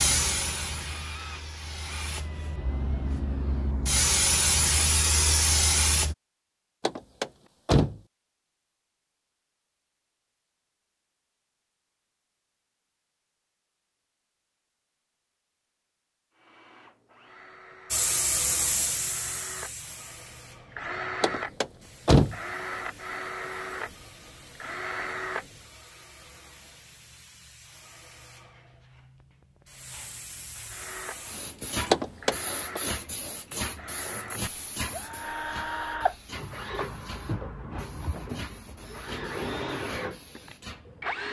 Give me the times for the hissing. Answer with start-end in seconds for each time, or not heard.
0.0-6.2, 17.9-41.1.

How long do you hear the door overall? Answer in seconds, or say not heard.
3 s.